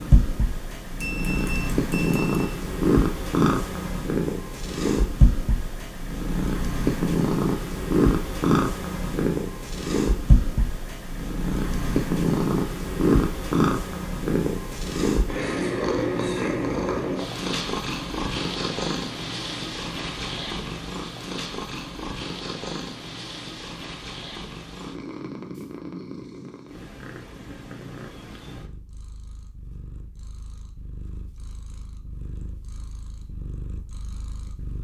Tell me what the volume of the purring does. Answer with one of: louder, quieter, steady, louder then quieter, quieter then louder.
quieter.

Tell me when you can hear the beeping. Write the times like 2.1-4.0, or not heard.
1.0-2.5.